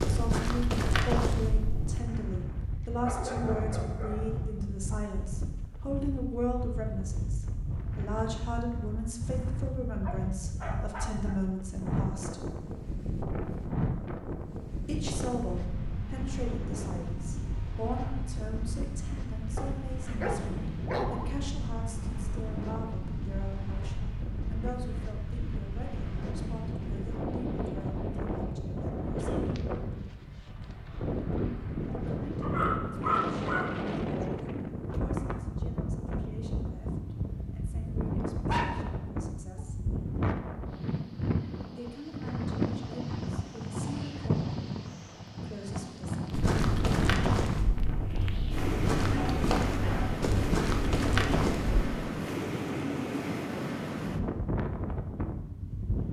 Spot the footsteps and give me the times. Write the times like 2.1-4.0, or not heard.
0.0-2.0, 46.3-51.9.